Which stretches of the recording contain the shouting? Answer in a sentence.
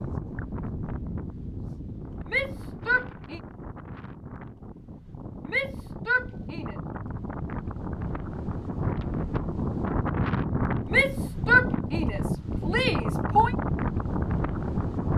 The shouting can be heard from 2.2 to 3.4 s, from 5.5 to 6.8 s and from 10.9 to 13.6 s.